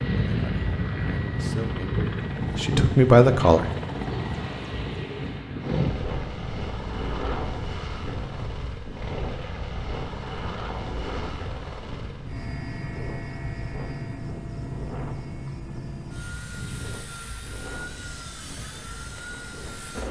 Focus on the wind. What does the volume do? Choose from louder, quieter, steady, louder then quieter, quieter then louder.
quieter.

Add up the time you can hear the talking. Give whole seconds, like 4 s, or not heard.
4 s.